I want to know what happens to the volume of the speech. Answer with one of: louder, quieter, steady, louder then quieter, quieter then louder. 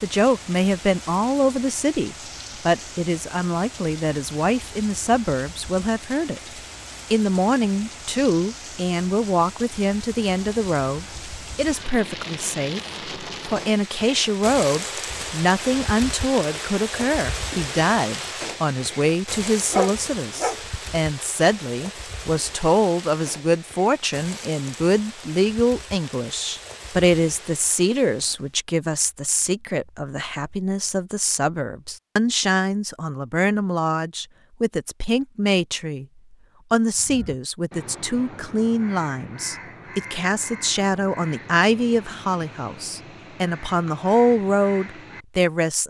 steady.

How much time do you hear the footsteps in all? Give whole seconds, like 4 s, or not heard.
not heard.